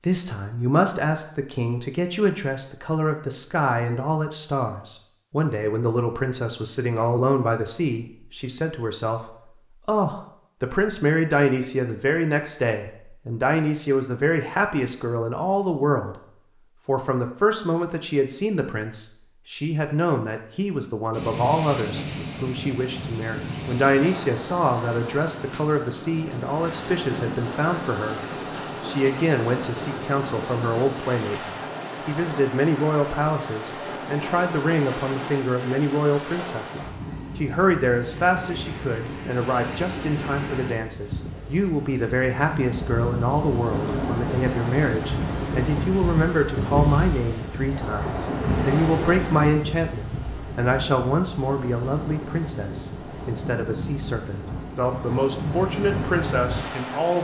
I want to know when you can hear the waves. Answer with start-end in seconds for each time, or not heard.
21.1-57.1.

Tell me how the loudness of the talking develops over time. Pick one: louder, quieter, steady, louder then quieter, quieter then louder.
steady.